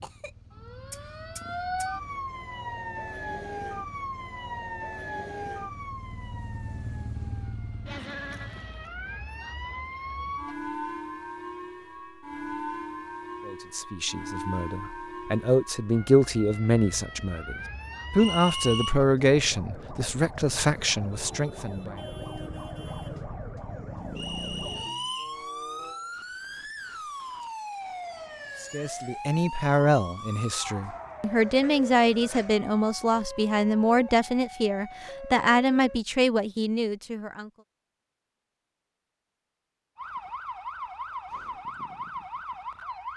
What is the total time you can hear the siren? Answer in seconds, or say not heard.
39 s.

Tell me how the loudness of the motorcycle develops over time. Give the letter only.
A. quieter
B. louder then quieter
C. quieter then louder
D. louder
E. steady
D.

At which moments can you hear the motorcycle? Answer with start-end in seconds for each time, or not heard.
0.0-8.9.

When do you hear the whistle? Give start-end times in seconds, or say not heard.
18.1-18.9, 24.1-25.4.